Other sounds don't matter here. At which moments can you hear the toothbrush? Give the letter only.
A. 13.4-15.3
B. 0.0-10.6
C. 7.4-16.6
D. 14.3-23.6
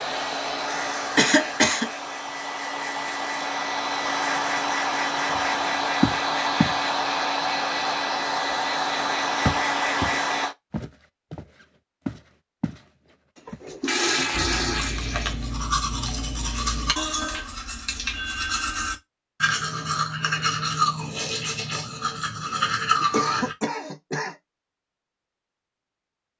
D.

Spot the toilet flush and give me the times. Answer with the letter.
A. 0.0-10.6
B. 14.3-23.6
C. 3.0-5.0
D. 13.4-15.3
D.